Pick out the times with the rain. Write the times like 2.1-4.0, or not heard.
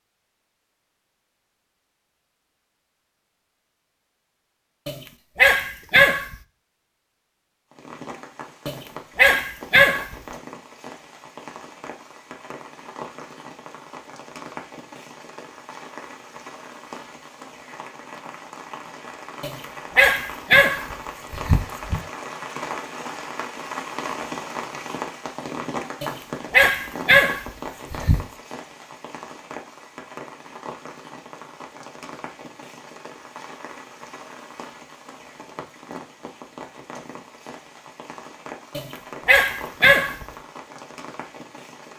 7.7-41.9.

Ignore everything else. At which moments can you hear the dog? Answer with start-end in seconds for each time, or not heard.
4.8-6.3, 8.7-10.2, 19.4-22.0, 26.0-28.2, 38.8-40.2.